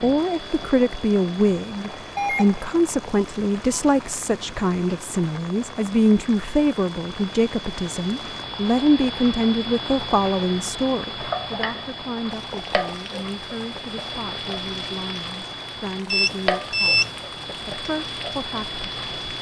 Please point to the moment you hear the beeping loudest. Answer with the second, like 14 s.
17 s.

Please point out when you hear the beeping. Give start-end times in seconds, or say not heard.
2.1-3.8, 16.1-17.1.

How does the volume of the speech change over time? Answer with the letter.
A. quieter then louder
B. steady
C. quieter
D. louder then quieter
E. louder
C.